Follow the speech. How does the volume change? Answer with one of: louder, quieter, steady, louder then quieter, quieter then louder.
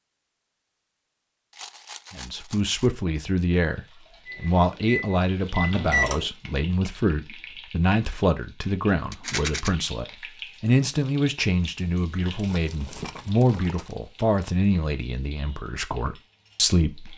steady.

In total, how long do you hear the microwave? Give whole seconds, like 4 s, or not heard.
2 s.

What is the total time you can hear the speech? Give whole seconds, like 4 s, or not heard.
15 s.